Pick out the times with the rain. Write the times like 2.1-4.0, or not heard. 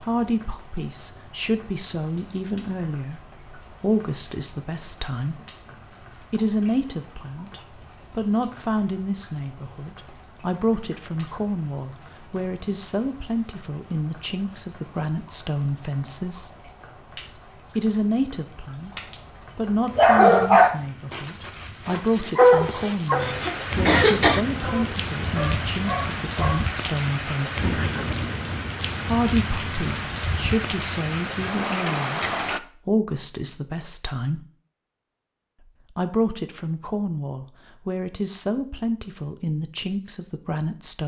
0.0-32.6.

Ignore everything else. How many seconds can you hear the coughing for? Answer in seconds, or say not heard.
2 s.